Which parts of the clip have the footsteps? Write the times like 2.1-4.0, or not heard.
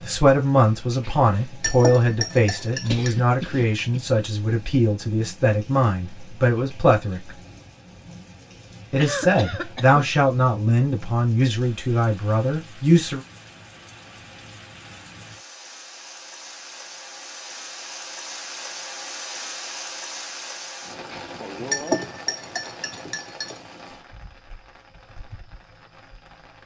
not heard.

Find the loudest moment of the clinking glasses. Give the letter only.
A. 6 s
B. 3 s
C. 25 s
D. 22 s
D.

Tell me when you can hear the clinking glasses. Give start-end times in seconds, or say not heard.
1.0-3.1, 21.1-23.6.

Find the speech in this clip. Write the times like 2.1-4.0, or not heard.
0.0-7.3, 8.9-13.2.